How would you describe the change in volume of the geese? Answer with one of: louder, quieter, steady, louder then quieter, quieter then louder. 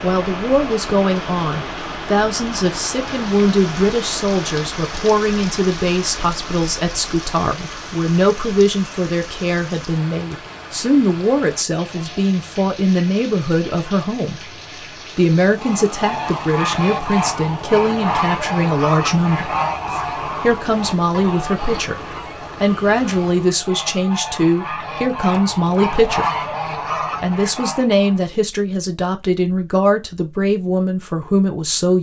quieter then louder.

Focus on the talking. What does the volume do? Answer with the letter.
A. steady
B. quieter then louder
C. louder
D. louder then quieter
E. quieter
A.